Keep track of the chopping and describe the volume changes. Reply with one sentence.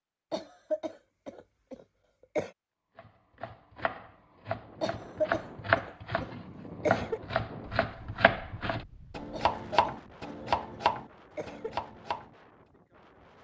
The volume of the chopping goes up.